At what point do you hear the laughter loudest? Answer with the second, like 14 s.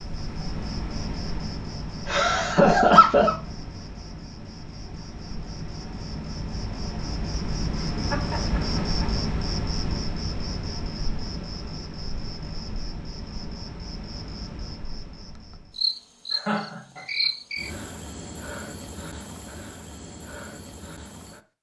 3 s.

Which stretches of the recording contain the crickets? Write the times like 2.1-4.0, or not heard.
0.0-21.4.